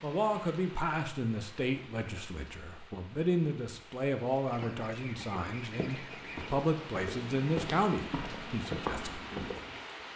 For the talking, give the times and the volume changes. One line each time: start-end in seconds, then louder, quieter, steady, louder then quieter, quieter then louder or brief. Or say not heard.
0.0-9.2 steady.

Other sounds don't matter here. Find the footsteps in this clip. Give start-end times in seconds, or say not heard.
4.5-9.8.